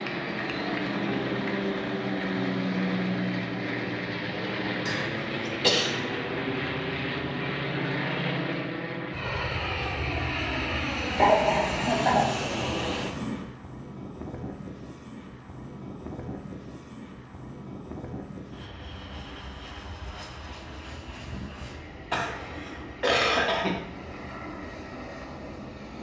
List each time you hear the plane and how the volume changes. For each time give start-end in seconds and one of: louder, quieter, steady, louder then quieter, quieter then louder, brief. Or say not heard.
0.0-25.9 quieter.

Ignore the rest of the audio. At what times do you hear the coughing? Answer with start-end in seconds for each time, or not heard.
4.8-5.9, 11.2-12.2, 22.1-23.8.